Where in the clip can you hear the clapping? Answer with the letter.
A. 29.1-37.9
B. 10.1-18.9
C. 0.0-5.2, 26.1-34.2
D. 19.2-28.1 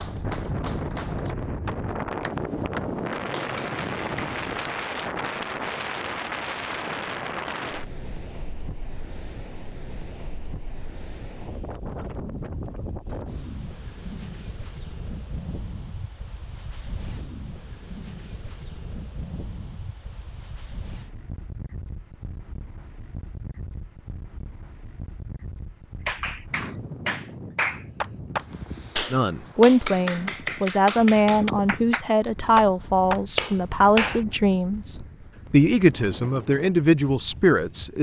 C.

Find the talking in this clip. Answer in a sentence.
You can hear the talking from 29.1 to 37.9 s.